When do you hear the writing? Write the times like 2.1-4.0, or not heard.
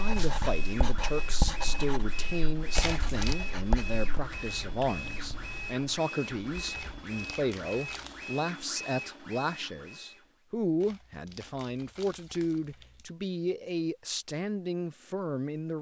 0.0-4.3.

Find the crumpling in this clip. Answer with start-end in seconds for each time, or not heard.
2.7-3.4, 6.7-8.3, 10.8-13.2.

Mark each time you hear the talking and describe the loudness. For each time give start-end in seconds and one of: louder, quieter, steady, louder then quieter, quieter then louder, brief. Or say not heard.
0.0-15.7 steady.